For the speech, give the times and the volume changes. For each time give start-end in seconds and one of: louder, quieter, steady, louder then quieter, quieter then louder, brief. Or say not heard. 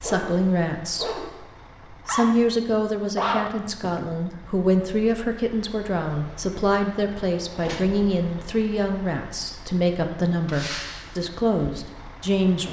0.0-1.4 brief
2.0-12.6 steady.